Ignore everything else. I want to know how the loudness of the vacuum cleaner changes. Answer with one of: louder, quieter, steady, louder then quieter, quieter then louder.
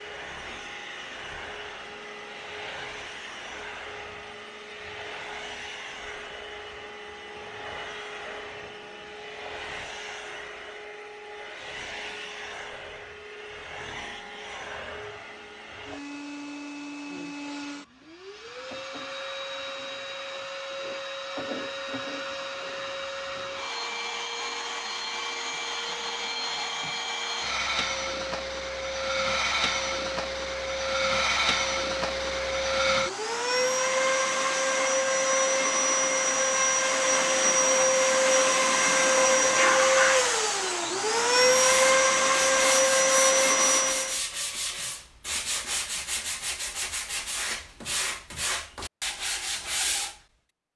louder.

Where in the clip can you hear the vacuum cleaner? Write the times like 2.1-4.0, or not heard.
0.0-44.2.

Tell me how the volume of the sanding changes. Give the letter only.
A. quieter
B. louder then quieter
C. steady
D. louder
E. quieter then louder
C.